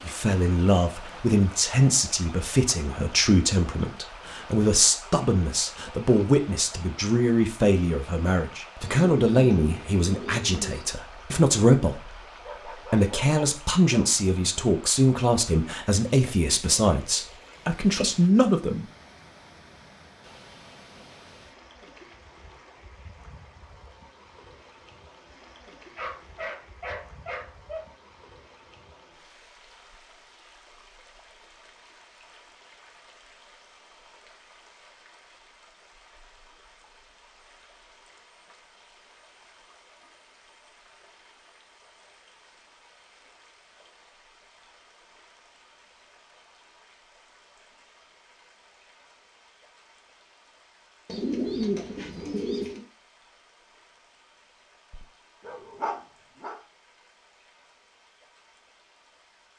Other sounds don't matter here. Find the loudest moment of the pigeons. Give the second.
52 s.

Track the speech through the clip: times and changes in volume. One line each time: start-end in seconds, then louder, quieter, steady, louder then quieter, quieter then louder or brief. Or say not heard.
0.0-18.9 steady.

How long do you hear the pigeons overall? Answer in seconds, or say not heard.
4 s.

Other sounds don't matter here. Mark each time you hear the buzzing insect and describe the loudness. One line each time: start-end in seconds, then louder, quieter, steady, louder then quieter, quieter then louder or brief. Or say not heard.
not heard.